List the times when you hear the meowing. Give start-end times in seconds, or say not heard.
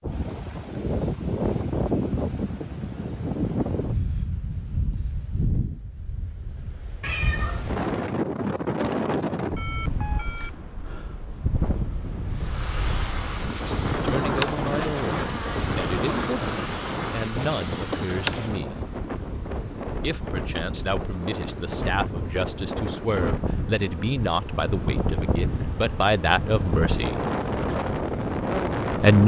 7.0-7.9.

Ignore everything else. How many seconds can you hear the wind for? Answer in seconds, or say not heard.
29 s.